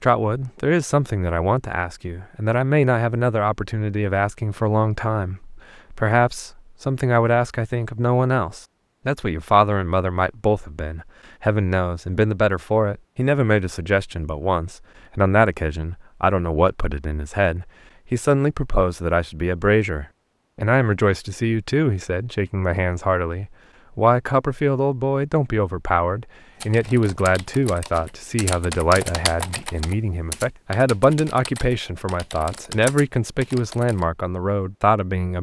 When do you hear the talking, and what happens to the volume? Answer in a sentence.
The talking can be heard from 0.0 to 35.3 s, at a steady volume.